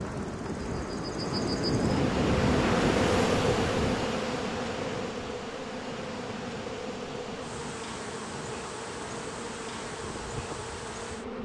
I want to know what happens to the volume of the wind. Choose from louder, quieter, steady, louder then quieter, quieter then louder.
quieter.